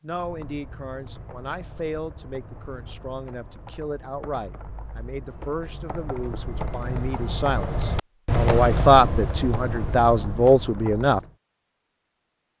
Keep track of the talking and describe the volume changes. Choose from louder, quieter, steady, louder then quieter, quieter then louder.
louder.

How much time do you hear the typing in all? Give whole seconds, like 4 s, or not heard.
11 s.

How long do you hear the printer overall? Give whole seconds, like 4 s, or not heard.
not heard.